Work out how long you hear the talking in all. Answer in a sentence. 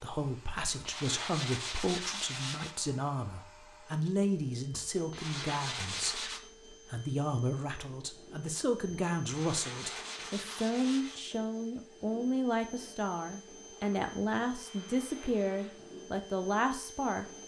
You can hear the talking for 17 seconds altogether.